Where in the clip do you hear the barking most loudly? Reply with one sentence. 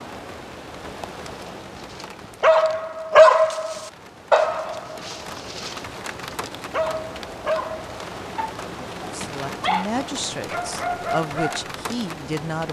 The loudest moment of the barking is at 3 seconds.